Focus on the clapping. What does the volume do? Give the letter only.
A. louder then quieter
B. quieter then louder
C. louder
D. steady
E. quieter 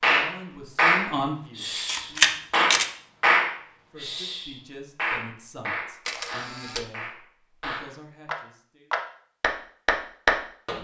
B.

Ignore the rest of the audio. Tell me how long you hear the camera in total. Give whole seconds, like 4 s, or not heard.
2 s.